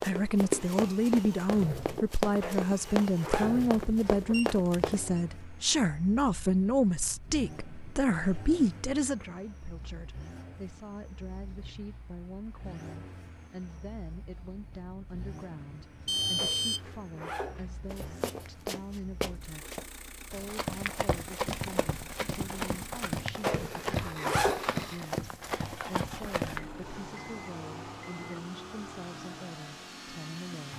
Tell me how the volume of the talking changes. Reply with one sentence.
The loudness of the talking goes down.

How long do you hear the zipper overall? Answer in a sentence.
The zipper can be heard for 5 seconds in total.